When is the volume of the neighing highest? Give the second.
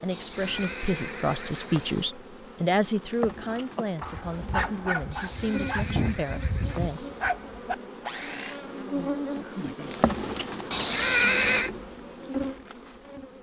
11 s.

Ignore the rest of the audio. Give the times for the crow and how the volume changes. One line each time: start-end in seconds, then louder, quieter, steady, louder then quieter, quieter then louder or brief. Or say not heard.
not heard.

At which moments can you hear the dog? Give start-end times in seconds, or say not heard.
3.5-8.6.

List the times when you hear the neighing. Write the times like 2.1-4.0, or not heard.
0.1-2.1, 5.1-7.1, 10.7-11.7.